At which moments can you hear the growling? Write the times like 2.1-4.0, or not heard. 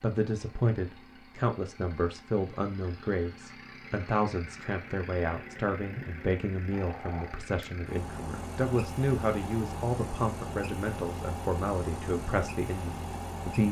6.7-7.5.